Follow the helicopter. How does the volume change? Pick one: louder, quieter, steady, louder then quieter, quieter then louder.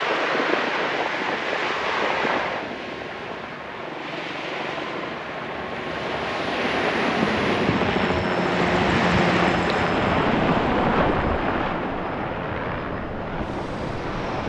louder then quieter.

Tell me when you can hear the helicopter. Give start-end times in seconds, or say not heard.
0.0-14.4.